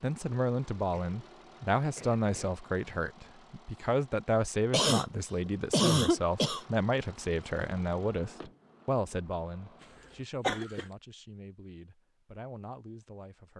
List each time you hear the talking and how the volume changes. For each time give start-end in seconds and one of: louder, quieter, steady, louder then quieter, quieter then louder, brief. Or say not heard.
0.0-13.5 quieter.